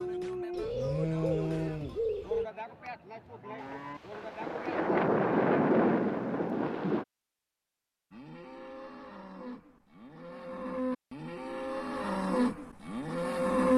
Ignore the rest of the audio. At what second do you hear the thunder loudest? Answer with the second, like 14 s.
6 s.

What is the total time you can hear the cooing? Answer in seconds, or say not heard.
2 s.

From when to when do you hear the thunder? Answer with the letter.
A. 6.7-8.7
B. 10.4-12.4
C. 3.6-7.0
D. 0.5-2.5
C.